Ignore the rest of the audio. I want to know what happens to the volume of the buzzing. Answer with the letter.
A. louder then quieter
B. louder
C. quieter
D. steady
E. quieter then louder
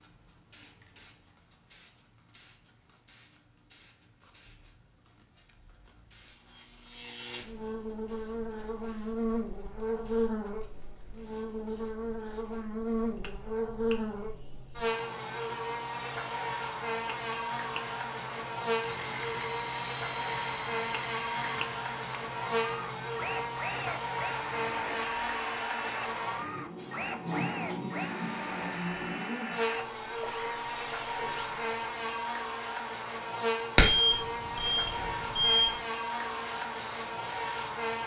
D.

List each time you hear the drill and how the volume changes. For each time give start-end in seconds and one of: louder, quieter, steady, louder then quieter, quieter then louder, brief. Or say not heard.
18.8-31.8 steady.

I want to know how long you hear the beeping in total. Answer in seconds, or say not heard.
2 s.